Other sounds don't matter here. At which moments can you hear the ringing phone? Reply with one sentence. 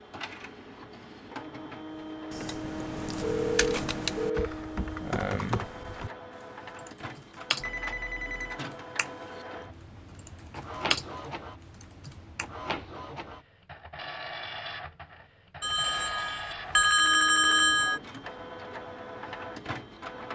You can hear the ringing phone from 3.2 to 4.5 s, from 7.6 to 8.7 s and from 15.6 to 18.0 s.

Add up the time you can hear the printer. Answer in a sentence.
The printer can be heard for 20 seconds in total.